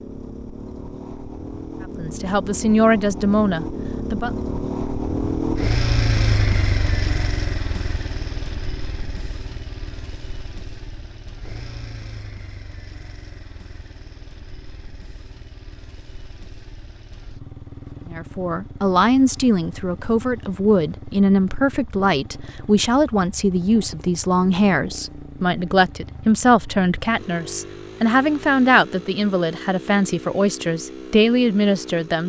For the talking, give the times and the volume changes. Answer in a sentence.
The talking can be heard briefly from 1.9 to 4.3 s; and from 18.1 to 32.2 s, at a steady volume.